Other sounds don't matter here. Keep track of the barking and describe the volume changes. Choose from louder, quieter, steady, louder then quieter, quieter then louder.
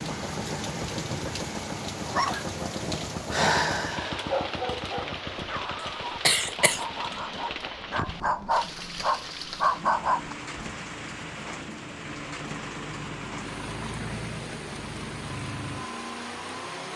quieter then louder.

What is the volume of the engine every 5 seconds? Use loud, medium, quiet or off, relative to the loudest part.
loud, medium, loud, loud.